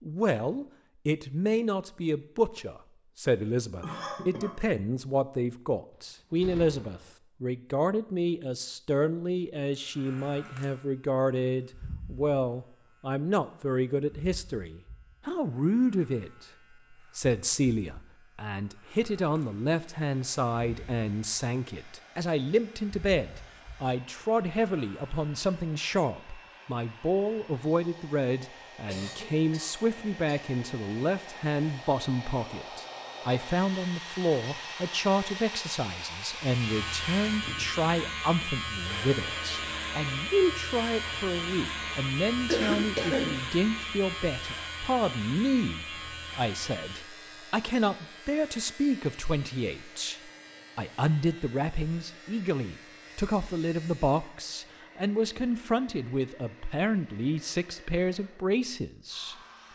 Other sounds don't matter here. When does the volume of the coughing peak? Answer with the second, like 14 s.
43 s.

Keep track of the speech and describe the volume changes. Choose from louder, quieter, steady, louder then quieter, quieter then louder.
steady.